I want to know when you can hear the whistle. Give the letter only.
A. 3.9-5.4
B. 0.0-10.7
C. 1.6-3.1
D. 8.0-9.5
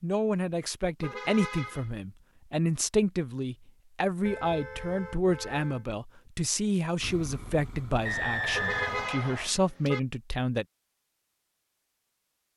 D.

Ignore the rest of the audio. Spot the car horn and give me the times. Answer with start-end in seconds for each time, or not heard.
1.0-1.9, 4.2-5.8, 8.5-10.0.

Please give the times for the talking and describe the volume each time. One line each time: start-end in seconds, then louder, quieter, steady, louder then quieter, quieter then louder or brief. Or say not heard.
0.0-10.7 steady.